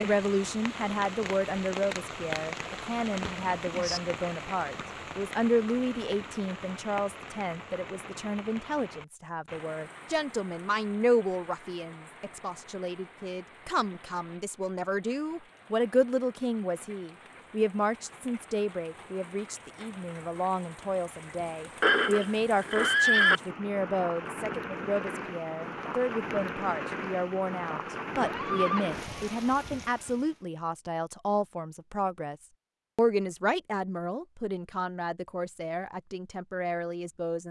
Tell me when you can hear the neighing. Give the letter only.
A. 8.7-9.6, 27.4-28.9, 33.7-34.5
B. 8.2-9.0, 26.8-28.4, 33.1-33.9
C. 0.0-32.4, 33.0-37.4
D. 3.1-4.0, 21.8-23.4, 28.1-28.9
D.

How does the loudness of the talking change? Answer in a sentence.
The loudness of the talking stays about the same.